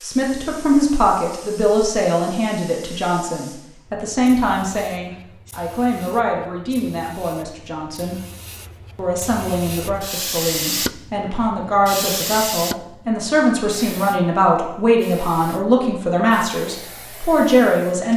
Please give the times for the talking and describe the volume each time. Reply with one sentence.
The talking can be heard from 0.0 to 8.2 s, getting quieter; and from 8.9 to 18.1 s, getting louder.